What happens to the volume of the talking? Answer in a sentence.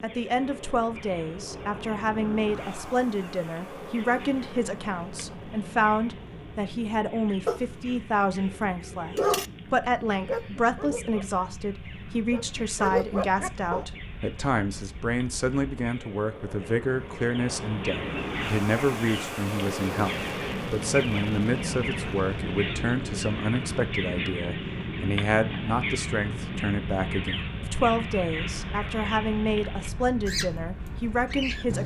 The loudness of the talking stays about the same.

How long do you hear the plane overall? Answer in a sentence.
You can hear the plane for 32 seconds altogether.